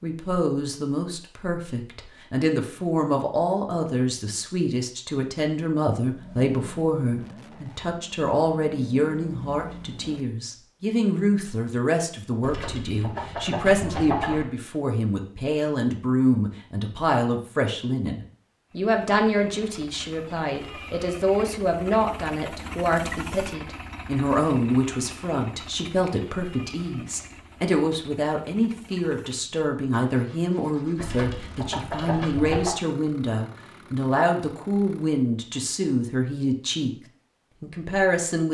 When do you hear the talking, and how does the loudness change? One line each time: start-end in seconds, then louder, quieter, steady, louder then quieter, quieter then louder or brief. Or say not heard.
0.0-36.9 steady
37.6-38.4 brief.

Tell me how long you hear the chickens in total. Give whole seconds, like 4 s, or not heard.
4 s.